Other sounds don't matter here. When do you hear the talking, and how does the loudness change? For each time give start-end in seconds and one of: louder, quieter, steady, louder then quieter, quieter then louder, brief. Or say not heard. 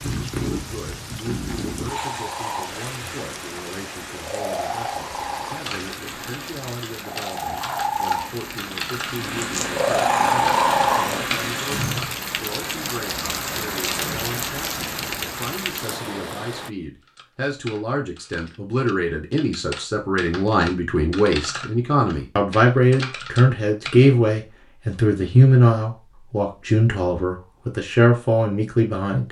0.2-29.2 louder.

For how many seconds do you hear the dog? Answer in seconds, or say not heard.
not heard.